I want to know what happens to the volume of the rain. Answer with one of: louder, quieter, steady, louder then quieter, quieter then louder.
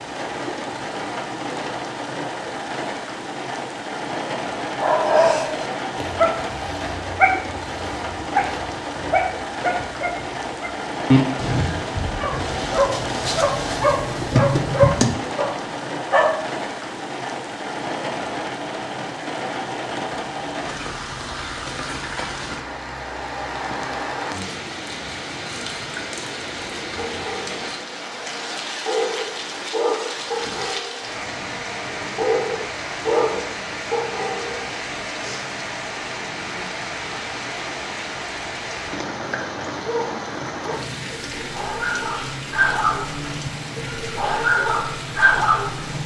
steady.